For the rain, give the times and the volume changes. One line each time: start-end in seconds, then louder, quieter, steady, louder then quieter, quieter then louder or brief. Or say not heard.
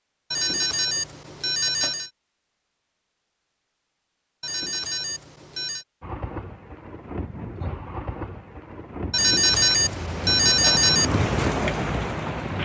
6.0-12.6 louder.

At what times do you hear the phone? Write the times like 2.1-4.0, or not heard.
0.3-2.1, 4.4-5.8, 9.1-11.1.